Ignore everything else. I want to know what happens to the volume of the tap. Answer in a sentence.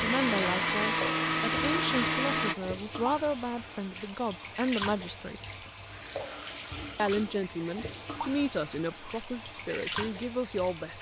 The loudness of the tap stays about the same.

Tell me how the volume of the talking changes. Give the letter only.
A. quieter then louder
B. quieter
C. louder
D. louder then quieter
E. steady
E.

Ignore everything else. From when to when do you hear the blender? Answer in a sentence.
The blender can be heard from 0.0 to 2.5 s.